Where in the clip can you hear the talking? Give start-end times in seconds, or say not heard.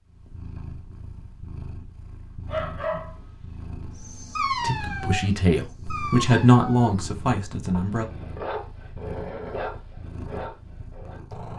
4.5-8.1.